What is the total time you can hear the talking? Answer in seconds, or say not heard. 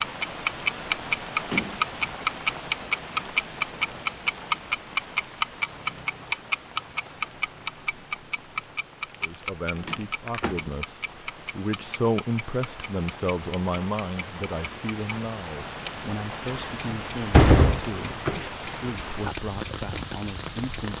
12 s.